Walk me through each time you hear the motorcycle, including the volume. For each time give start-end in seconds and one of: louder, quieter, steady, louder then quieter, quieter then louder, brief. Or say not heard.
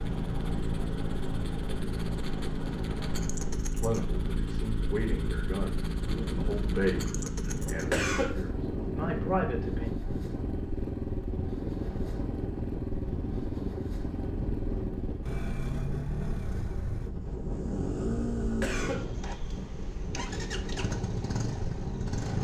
0.0-22.3 steady.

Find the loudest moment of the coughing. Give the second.
8 s.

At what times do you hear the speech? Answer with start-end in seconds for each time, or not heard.
3.7-9.9.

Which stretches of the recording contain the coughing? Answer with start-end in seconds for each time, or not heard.
7.9-8.3, 18.6-19.1.